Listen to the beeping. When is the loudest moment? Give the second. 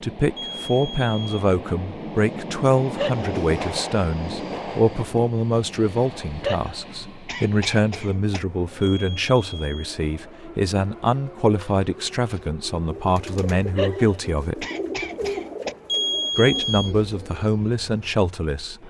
16 s.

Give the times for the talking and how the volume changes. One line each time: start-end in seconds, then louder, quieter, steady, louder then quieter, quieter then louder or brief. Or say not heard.
0.0-14.7 steady
16.4-18.8 brief.